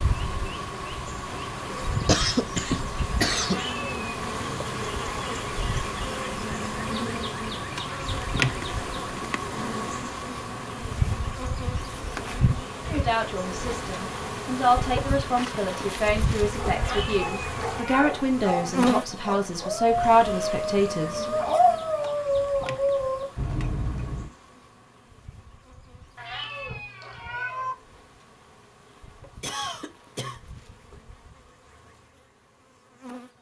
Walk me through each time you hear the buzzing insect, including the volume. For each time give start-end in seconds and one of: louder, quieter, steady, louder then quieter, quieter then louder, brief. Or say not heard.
0.0-33.3 quieter.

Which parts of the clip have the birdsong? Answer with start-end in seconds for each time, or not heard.
not heard.